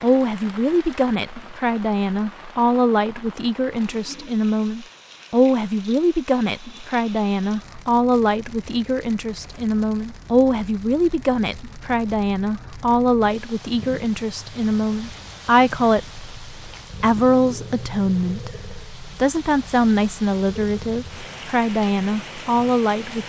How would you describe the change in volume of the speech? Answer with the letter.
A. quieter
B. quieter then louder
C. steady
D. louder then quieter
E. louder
C.